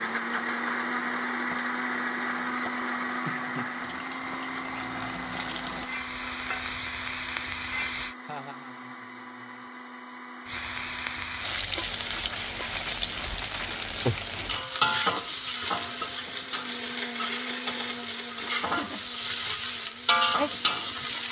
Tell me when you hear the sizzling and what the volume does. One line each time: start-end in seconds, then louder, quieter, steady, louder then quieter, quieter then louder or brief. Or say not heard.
0.0-8.2 louder
10.4-21.2 quieter then louder.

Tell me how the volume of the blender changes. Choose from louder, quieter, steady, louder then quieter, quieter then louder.
quieter then louder.